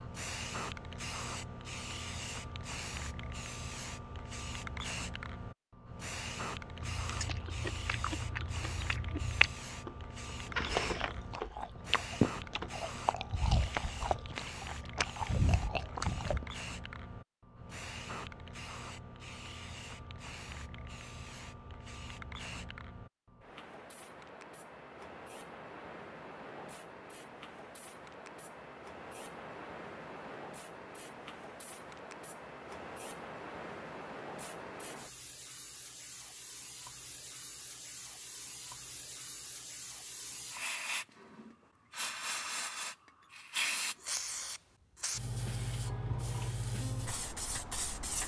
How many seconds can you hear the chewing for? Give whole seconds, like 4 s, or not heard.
9 s.